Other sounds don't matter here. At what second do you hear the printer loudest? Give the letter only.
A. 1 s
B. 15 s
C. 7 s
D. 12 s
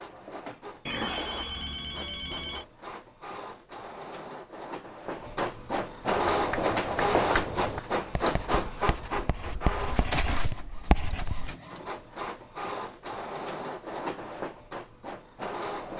C.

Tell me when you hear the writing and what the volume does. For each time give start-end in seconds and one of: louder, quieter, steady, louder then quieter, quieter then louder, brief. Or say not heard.
6.2-11.6 quieter then louder.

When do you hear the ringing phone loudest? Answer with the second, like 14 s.
1 s.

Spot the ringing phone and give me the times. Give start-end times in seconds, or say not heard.
0.8-2.6.